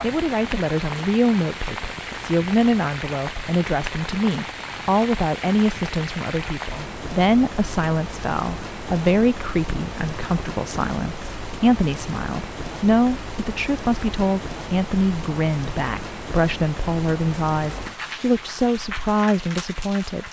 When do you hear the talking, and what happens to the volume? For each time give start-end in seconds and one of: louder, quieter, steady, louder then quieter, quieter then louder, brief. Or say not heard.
0.0-20.2 steady.